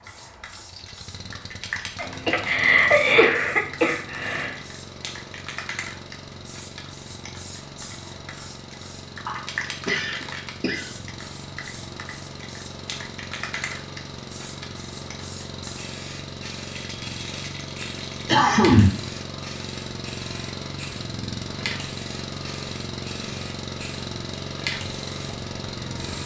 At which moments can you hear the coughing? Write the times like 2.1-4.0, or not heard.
1.9-4.5, 9.2-10.9, 18.2-19.1.